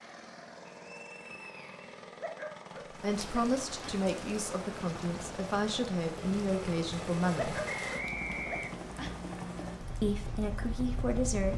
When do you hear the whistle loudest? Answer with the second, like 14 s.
8 s.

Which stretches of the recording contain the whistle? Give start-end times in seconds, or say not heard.
0.8-1.9, 7.7-8.7.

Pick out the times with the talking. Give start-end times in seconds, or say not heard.
3.0-7.6, 10.0-11.5.